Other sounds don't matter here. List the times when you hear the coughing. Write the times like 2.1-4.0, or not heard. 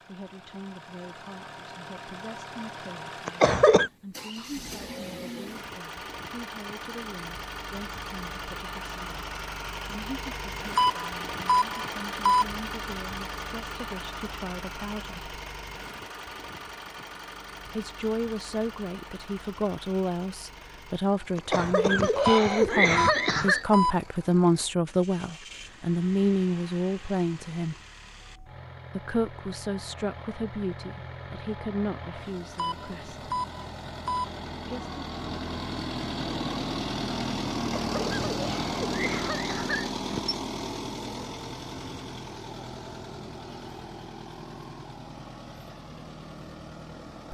3.2-3.9, 21.4-23.6, 37.8-40.2.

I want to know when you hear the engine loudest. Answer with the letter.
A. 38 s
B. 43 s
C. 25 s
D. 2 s
A.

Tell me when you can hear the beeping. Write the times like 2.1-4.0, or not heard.
10.8-12.4, 22.2-23.9, 32.5-34.2.